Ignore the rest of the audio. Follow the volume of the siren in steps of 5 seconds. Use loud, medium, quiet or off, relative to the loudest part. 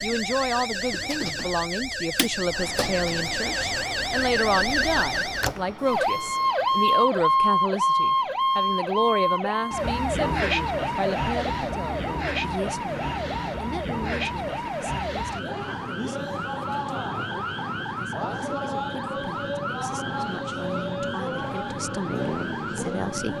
medium, loud, medium, medium, medium.